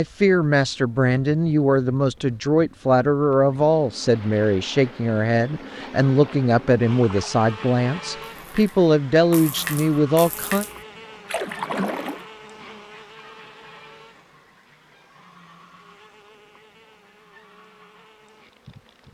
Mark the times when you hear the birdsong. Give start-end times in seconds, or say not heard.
not heard.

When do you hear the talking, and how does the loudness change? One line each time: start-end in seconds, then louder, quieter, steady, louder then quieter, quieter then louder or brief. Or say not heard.
0.0-10.7 steady.